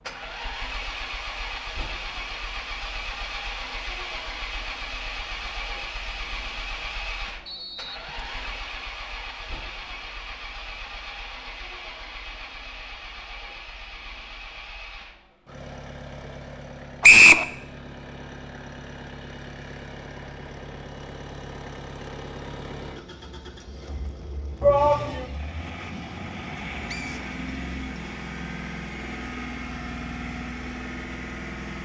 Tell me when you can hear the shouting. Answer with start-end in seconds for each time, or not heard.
24.6-25.2.